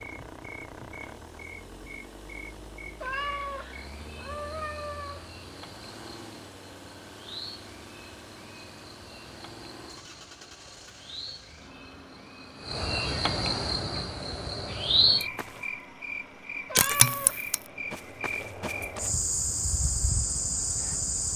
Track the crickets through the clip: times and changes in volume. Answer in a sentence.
You can hear the crickets from 0.0 to 21.3 s, getting louder.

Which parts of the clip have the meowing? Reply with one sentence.
The meowing can be heard from 3.0 to 5.4 s and from 16.6 to 17.4 s.